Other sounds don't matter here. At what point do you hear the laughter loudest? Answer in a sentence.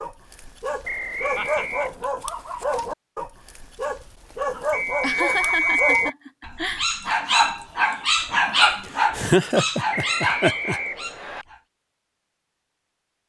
The volume of the laughter peaks at 9 seconds.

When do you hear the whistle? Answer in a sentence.
The whistle can be heard from 0.8 to 1.9 s, from 4.7 to 6.2 s and from 9.9 to 11.4 s.